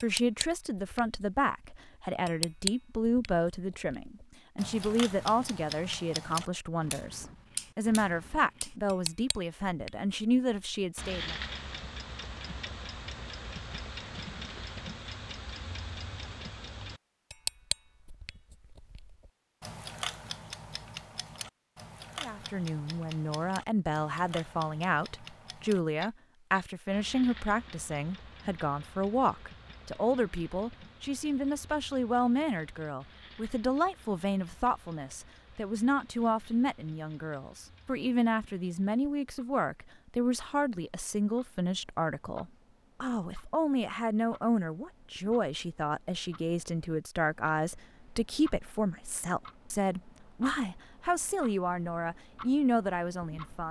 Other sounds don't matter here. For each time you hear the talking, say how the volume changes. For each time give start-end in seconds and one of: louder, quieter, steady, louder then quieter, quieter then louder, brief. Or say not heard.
0.0-11.3 steady
22.2-53.6 steady.